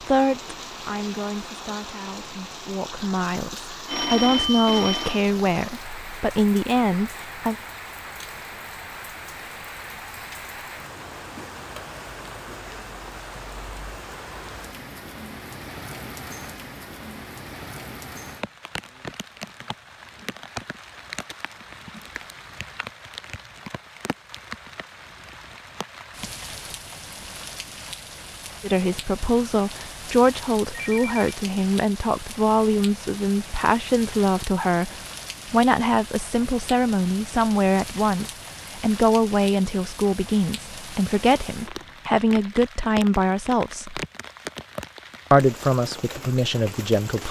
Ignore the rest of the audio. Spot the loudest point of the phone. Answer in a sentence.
The volume of the phone peaks at 4 seconds.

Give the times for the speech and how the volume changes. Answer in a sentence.
You can hear the speech from 0.1 to 7.5 s, getting louder; from 28.6 to 44.0 s, at a steady volume; and briefly from 45.3 to 47.2 s.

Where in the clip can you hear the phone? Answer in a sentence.
The phone can be heard from 3.9 to 5.2 s and from 30.7 to 31.2 s.